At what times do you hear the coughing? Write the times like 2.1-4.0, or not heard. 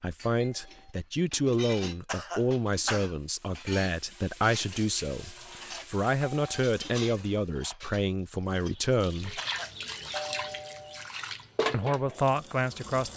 2.0-3.1, 9.3-10.3.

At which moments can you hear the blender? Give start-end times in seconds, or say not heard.
not heard.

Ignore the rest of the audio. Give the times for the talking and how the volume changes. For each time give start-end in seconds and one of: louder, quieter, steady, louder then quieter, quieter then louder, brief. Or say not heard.
0.0-9.4 steady
11.7-13.1 brief.